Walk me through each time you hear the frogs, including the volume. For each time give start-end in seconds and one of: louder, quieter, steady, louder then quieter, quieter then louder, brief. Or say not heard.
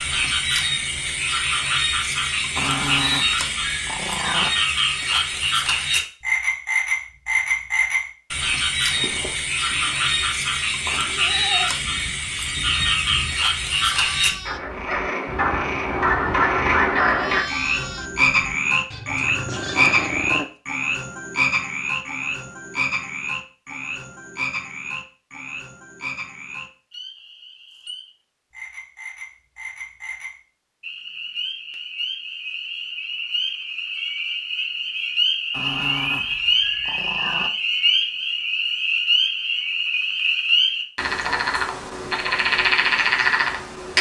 0.0-43.9 quieter then louder.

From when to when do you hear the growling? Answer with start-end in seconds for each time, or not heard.
2.5-4.5, 19.2-20.5, 35.5-37.5.